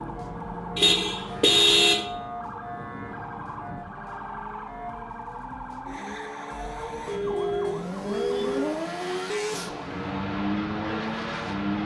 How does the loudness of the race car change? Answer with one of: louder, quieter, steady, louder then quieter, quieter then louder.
quieter then louder.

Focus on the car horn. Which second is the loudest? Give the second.
2 s.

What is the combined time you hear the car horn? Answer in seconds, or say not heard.
3 s.